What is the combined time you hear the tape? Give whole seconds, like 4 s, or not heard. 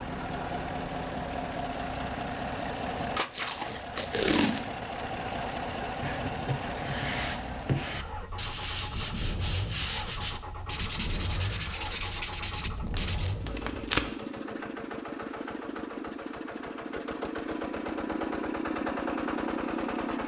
3 s.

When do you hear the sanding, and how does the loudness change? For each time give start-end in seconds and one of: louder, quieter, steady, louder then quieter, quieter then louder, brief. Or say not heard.
5.8-13.3 steady.